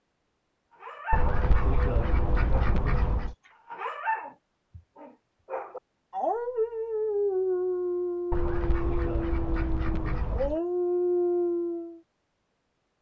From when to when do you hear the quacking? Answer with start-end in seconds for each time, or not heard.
1.1-3.4, 8.3-10.6.